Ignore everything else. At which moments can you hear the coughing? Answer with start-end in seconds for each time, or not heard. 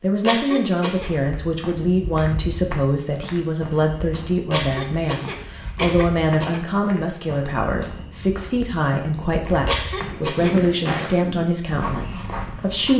0.2-1.1, 4.5-6.6, 9.7-10.7.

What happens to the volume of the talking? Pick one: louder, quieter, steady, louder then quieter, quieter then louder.
steady.